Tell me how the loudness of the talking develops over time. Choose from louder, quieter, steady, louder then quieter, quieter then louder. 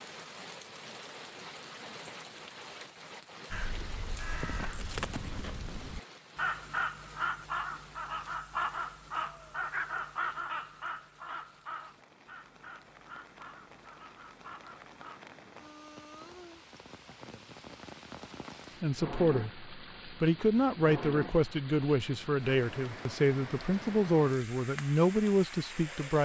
steady.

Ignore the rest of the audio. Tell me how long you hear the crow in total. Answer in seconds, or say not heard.
12 s.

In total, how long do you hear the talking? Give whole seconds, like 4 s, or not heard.
7 s.